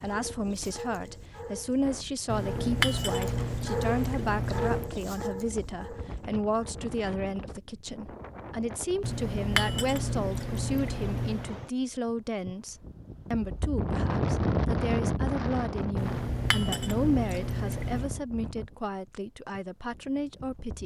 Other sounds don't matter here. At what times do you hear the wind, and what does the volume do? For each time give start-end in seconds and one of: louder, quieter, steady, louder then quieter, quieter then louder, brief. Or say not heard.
0.0-20.8 louder then quieter.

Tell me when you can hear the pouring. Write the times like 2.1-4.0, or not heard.
2.2-4.9, 9.0-11.6, 15.9-18.2.